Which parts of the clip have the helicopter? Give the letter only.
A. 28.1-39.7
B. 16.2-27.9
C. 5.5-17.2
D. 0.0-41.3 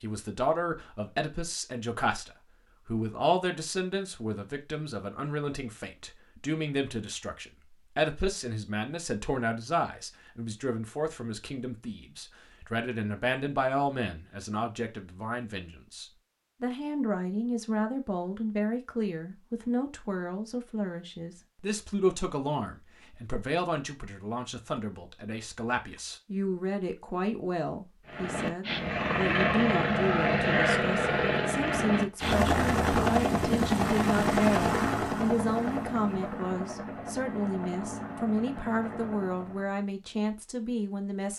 A.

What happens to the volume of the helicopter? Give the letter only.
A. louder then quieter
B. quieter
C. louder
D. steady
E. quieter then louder
B.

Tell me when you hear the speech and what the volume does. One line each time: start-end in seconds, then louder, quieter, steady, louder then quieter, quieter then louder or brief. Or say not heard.
0.0-41.3 steady.